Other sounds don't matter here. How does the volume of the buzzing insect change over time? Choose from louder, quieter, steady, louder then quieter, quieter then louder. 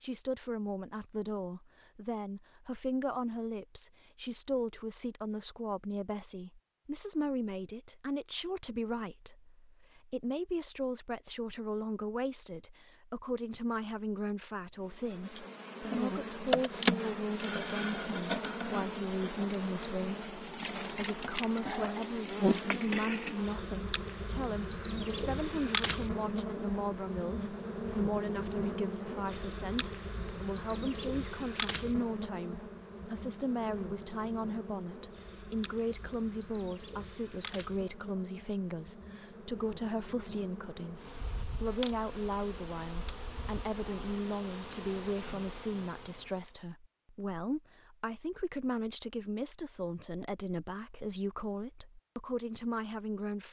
quieter.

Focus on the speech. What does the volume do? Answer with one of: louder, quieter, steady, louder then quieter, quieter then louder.
steady.